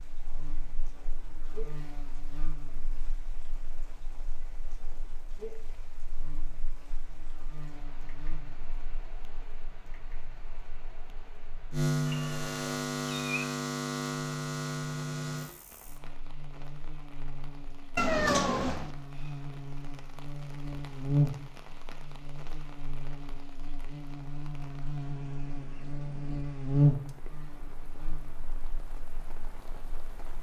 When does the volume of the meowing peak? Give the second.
18 s.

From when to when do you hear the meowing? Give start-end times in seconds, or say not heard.
12.1-13.3, 17.9-18.9.